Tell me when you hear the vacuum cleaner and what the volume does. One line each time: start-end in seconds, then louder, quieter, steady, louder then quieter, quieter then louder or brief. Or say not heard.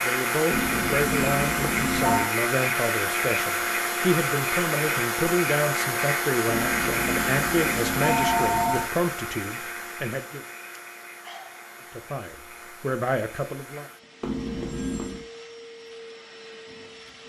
0.0-17.2 quieter.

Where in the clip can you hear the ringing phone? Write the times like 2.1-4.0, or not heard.
0.5-2.3, 6.5-8.9, 14.2-15.2.